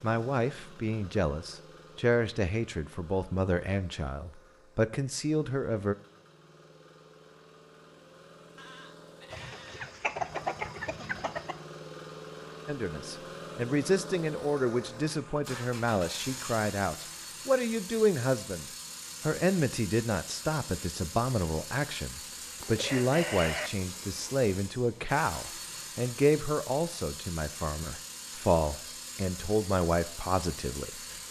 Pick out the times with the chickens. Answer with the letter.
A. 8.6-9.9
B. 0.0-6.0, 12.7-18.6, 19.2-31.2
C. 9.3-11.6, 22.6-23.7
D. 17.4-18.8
C.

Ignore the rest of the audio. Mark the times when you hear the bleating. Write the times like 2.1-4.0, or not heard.
8.6-9.9.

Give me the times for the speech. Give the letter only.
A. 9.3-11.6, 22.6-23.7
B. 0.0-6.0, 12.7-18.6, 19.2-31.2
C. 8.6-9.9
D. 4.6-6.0
B.